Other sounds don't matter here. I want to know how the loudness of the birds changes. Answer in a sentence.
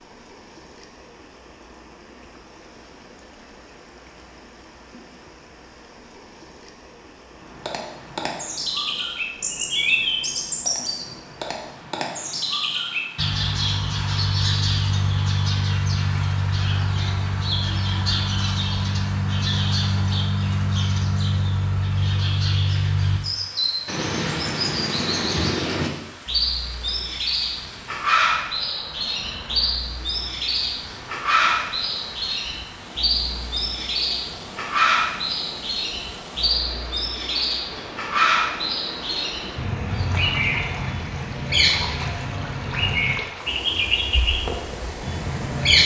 The volume of the birds stays about the same.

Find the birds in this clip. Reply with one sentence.
You can hear the birds from 7.5 to 45.8 s.